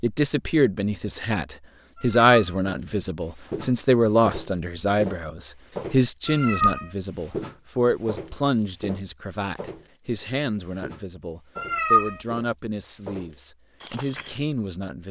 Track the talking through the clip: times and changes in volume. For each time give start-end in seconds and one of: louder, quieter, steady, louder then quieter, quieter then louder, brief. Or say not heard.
0.0-15.0 quieter.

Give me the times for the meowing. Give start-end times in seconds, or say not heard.
1.9-2.5, 6.2-6.8, 11.6-12.2.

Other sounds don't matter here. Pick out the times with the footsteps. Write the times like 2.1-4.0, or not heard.
2.6-10.0, 10.7-14.3.